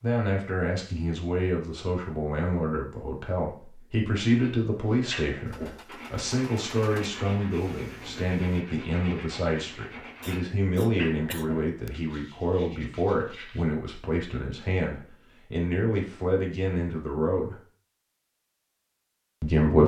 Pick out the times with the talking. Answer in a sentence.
You can hear the talking from 0.0 to 17.6 s and from 19.4 to 19.8 s.